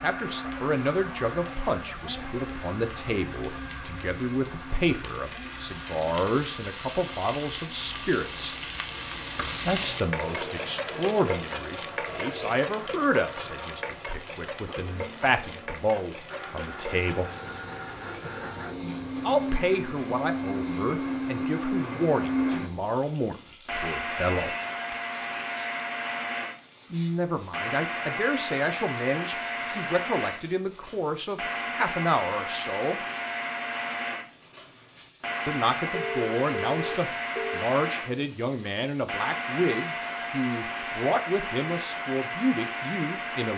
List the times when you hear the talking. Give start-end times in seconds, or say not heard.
0.0-8.6, 9.7-17.3, 19.2-24.6, 26.9-33.0, 35.5-43.5.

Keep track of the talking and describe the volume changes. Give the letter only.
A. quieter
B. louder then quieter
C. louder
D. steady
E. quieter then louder
D.